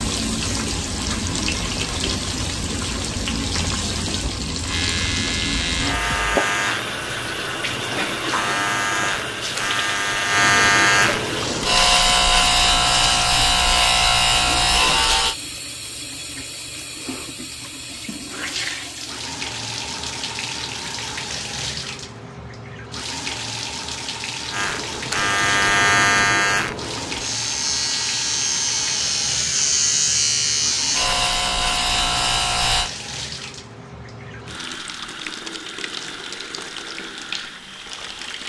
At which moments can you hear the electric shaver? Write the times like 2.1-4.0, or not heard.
4.7-15.3, 24.5-32.9.